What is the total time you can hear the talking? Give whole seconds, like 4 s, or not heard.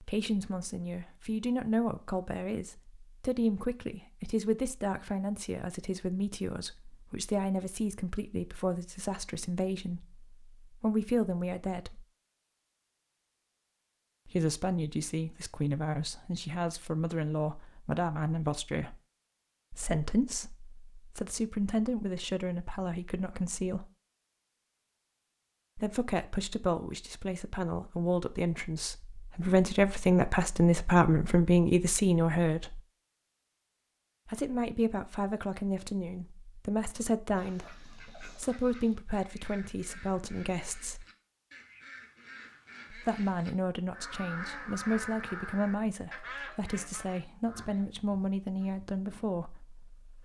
42 s.